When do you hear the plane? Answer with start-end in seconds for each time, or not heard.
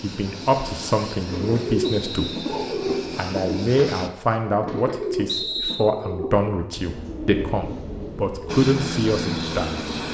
0.0-4.1, 8.4-10.0.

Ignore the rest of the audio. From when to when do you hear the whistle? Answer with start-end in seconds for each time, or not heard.
1.8-2.5, 5.2-5.9.